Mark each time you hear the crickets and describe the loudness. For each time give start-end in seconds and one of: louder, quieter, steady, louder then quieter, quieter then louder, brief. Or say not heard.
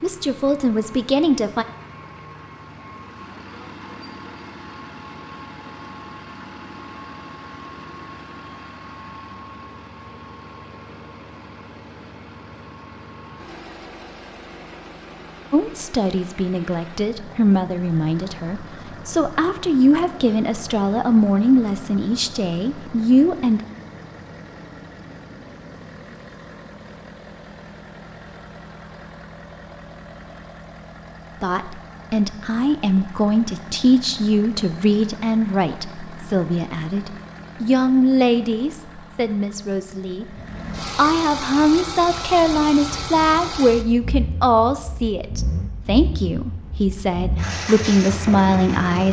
not heard.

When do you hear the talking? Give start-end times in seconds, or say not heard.
0.0-1.6, 15.5-23.6, 31.4-40.2, 41.0-49.0.